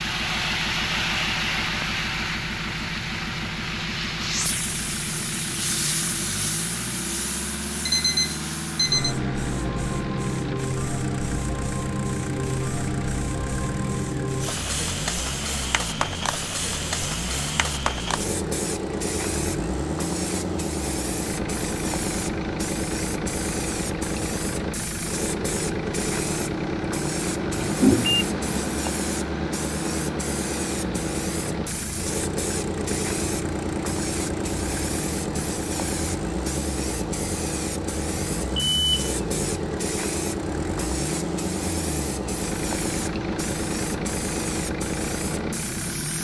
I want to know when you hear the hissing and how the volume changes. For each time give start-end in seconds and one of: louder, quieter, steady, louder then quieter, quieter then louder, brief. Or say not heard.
0.0-46.2 steady.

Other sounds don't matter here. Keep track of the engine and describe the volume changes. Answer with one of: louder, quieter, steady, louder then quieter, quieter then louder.
steady.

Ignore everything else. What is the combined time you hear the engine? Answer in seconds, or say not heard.
46 s.